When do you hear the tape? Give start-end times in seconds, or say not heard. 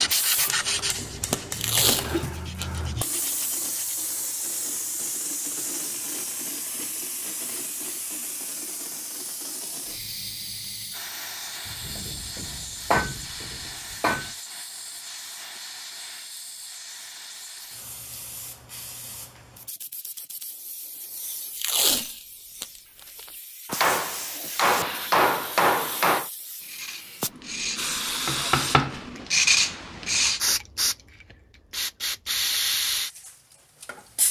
1.5-3.3, 21.5-23.3.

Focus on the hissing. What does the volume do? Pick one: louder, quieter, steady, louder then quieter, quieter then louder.
quieter then louder.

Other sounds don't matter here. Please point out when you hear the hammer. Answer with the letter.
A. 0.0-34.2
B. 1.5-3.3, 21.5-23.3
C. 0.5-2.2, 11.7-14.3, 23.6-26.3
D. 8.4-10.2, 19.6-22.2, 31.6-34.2
C.